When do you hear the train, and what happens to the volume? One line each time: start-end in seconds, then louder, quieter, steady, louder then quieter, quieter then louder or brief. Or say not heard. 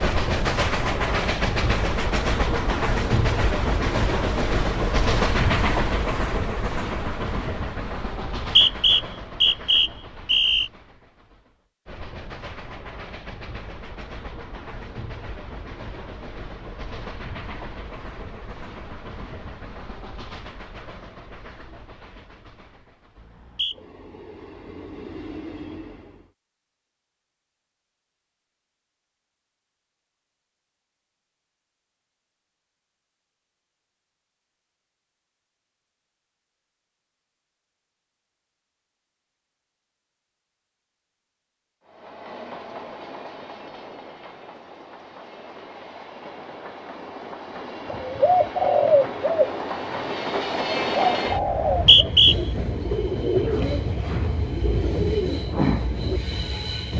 0.0-26.3 quieter
41.9-56.9 louder.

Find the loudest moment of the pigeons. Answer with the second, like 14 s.
49 s.